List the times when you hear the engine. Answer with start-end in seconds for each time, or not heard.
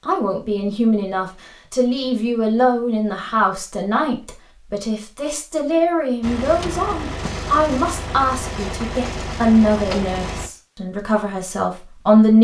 6.2-10.5.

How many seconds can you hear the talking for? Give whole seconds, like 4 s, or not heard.
12 s.